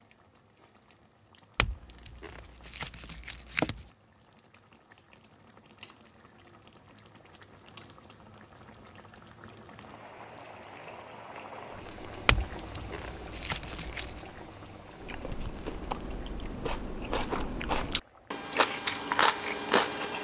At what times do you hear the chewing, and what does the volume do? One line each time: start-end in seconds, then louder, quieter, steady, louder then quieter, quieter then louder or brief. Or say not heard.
15.0-20.1 louder.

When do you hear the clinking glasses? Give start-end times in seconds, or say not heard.
1.6-3.9, 12.2-14.2.